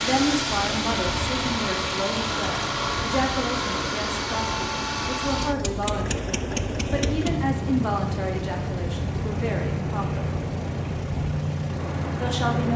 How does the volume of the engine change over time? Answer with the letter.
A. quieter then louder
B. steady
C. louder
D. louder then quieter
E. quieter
B.